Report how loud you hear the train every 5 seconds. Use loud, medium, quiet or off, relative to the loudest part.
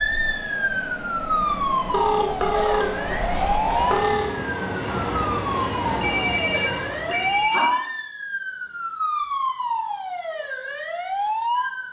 loud, loud, off.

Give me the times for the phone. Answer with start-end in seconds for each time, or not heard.
1.9-4.3, 6.0-7.7.